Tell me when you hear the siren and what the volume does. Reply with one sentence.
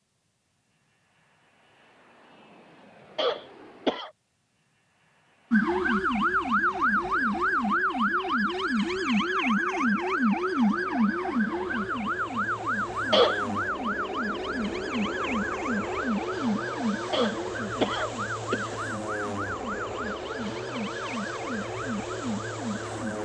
The siren can be heard from 5.5 to 23.2 s, getting quieter.